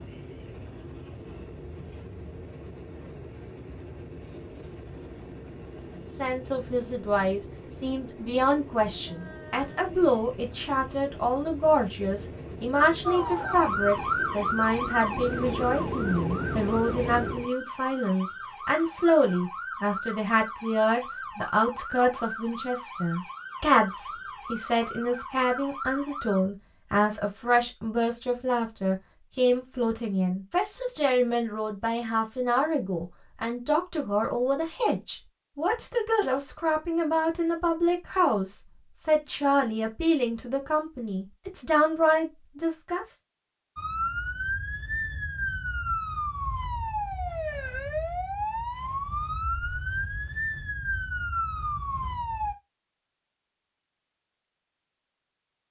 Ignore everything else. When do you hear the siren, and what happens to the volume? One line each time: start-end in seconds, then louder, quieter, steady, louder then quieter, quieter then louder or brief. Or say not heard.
13.0-26.4 quieter
43.8-52.5 steady.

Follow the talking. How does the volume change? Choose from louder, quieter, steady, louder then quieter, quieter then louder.
steady.